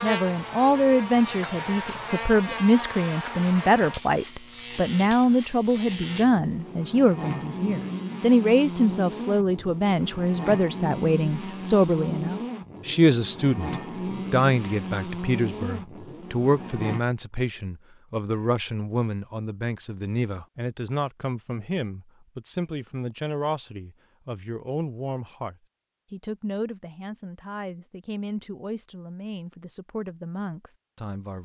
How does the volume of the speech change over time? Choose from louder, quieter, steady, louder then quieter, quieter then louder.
quieter.